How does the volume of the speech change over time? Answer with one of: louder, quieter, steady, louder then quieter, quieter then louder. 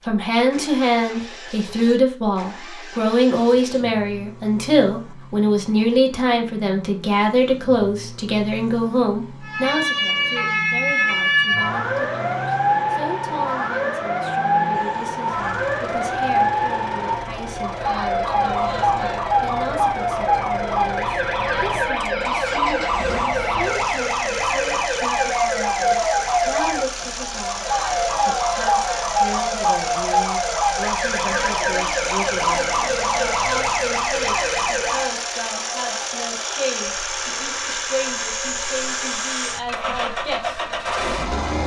quieter.